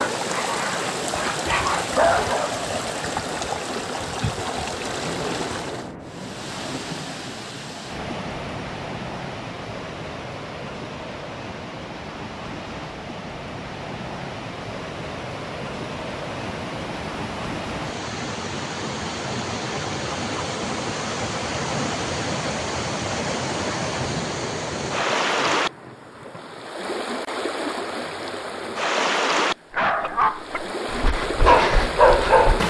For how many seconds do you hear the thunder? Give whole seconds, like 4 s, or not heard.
5 s.